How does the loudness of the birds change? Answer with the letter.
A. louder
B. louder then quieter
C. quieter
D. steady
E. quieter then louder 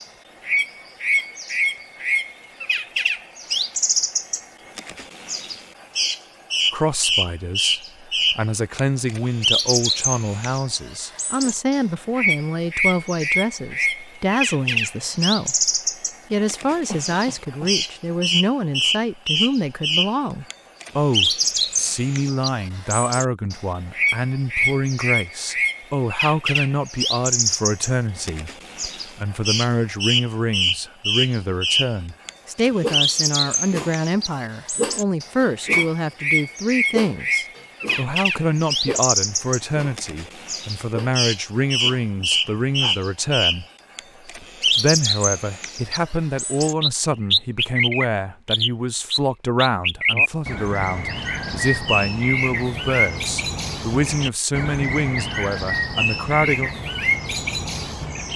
D.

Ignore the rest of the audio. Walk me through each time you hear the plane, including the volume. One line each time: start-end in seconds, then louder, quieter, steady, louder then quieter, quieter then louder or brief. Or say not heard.
not heard.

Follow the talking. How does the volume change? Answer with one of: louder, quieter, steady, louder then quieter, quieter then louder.
steady.